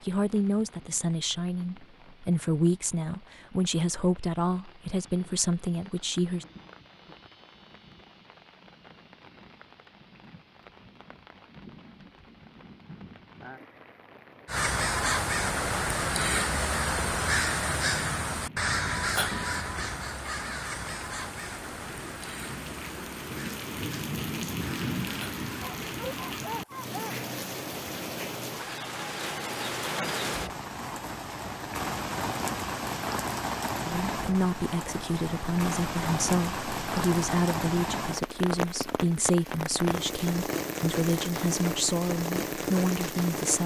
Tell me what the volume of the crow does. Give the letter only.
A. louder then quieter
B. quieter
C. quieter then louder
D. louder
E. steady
B.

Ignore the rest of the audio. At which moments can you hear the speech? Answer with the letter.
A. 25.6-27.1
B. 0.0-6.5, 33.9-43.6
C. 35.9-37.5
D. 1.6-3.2
B.